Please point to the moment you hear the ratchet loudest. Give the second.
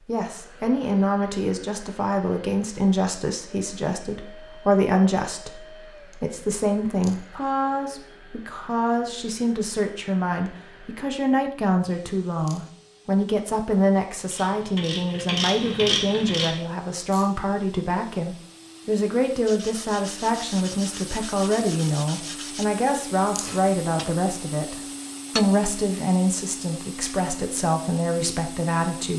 16 s.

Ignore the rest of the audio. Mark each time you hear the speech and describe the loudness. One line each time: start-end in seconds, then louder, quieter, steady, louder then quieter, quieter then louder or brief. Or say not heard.
0.1-29.1 steady.